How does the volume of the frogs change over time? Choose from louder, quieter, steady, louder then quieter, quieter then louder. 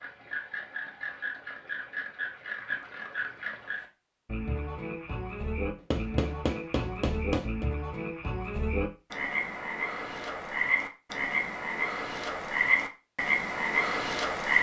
louder.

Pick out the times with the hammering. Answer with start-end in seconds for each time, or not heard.
5.8-7.7.